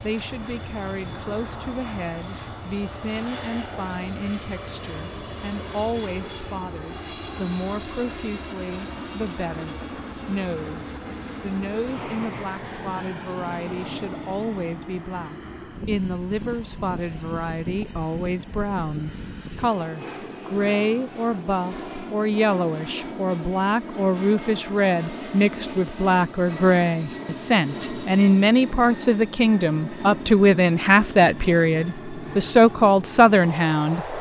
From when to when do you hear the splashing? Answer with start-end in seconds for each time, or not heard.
not heard.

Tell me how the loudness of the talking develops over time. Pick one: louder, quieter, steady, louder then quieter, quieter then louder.
louder.